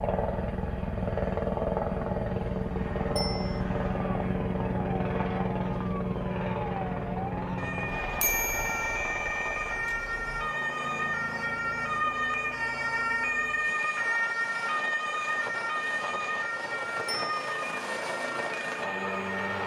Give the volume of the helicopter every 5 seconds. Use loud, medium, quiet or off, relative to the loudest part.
loud, loud, medium, medium.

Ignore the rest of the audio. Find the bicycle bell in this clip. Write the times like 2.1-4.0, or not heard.
3.1-3.6, 8.2-9.8, 17.1-17.6.